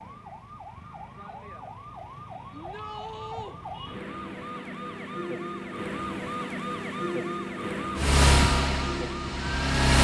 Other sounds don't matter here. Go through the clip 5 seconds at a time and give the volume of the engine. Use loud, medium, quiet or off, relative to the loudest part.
off, loud.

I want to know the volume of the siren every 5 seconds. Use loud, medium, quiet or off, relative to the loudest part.
medium, loud.